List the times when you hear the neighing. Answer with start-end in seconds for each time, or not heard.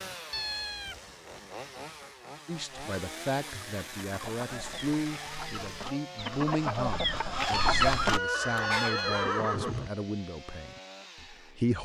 8.0-9.9.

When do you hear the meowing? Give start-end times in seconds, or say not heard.
0.3-0.9, 7.5-9.4.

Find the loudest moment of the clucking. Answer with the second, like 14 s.
8 s.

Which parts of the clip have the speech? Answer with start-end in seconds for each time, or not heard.
2.5-11.7.